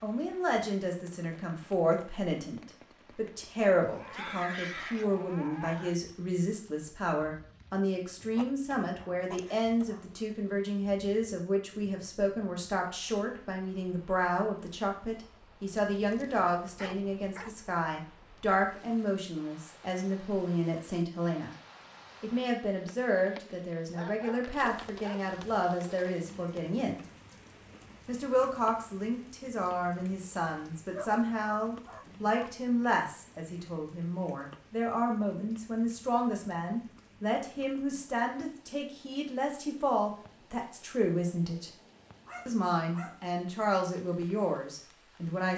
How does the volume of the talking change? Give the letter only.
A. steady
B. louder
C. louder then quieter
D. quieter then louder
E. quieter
A.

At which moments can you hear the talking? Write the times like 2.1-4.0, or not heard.
0.0-21.5, 22.2-27.0, 28.1-41.7, 42.5-45.5.